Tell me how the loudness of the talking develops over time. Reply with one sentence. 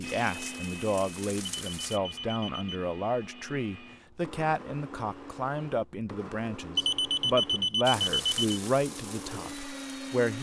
The volume of the talking stays about the same.